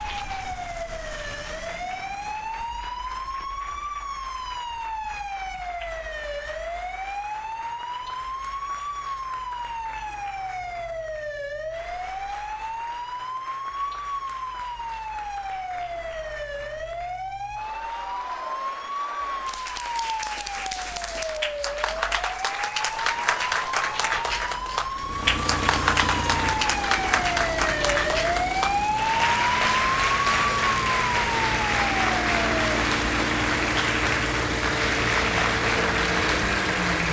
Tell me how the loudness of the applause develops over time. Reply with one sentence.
The volume of the applause goes up.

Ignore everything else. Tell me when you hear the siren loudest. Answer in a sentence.
The loudest moment of the siren is at 29 seconds.